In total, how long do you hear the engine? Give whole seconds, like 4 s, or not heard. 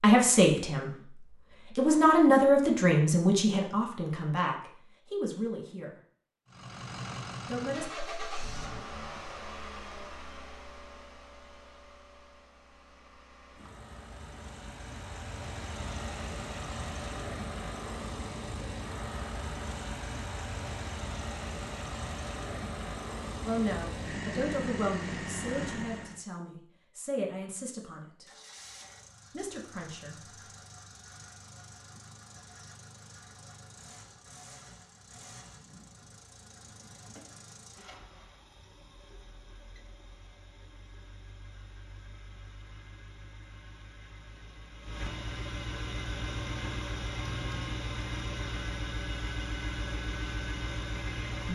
43 s.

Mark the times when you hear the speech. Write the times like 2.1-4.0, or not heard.
0.0-6.0, 7.5-7.9, 23.4-28.2, 29.3-30.1.